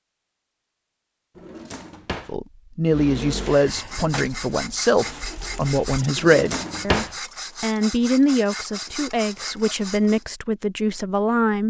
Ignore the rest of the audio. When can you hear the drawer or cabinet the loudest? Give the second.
7 s.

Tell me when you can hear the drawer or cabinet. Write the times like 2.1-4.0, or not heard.
1.4-2.4, 6.2-7.2.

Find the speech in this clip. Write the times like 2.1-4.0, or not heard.
2.2-11.6.